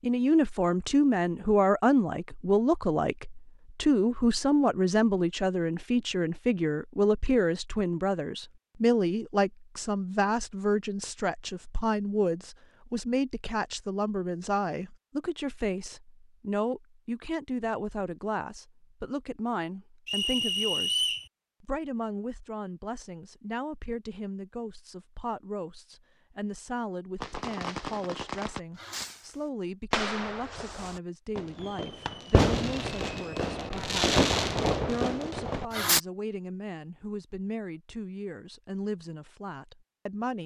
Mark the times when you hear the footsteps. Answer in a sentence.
You can't hear the footsteps here.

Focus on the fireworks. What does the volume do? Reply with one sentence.
The volume of the fireworks goes up.